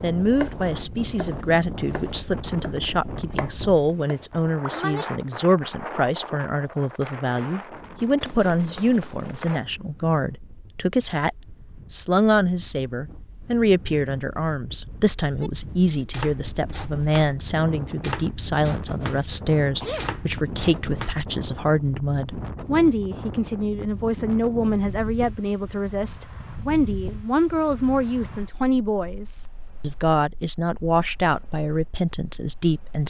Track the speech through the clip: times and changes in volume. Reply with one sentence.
You can hear the speech from 0.0 to 33.0 s, at a steady volume.